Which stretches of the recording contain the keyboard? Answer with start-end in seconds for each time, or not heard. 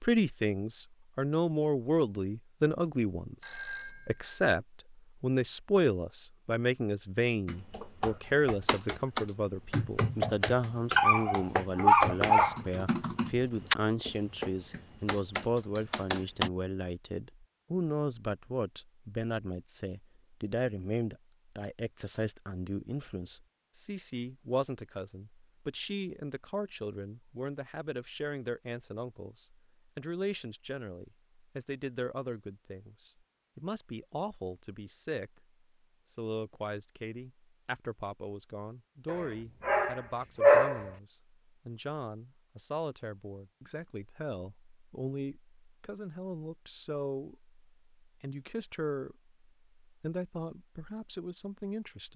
7.5-16.5.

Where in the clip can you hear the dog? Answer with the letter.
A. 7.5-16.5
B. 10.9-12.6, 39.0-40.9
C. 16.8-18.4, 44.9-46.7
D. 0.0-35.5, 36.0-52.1
B.